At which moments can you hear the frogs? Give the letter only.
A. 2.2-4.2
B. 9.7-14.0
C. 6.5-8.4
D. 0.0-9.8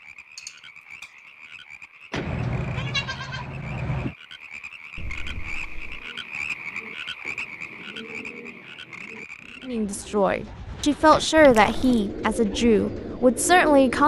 D.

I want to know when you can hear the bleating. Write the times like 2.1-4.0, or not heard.
2.2-4.2.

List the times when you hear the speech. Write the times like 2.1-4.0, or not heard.
9.7-14.0.